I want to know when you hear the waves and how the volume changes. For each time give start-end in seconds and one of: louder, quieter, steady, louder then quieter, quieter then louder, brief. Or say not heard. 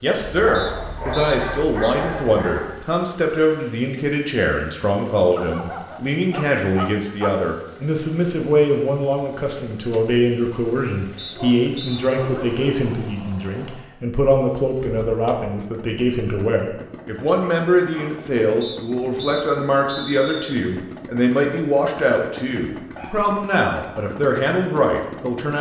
not heard.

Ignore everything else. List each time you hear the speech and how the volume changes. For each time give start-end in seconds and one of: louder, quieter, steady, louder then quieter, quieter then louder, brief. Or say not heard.
0.0-25.5 steady.